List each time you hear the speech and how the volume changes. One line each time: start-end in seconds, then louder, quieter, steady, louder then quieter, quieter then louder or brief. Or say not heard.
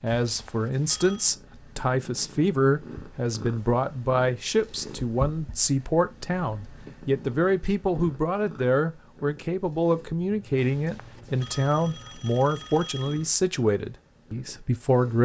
0.0-15.2 steady.